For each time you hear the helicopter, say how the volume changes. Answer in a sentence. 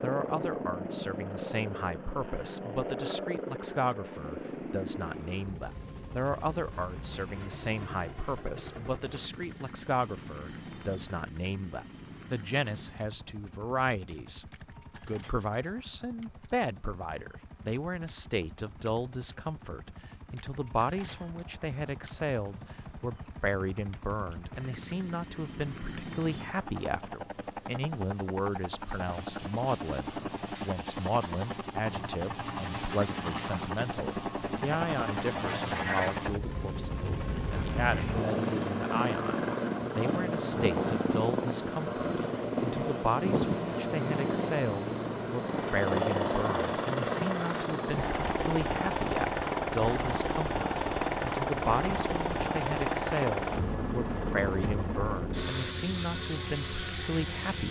You can hear the helicopter from 0.0 to 57.6 s, getting quieter then louder.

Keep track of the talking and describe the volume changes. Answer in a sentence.
The loudness of the talking stays about the same.